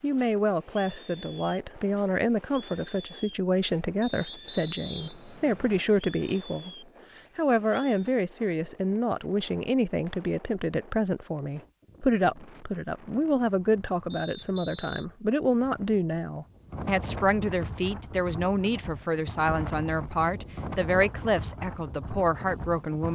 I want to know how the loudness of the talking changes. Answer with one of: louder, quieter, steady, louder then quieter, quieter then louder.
steady.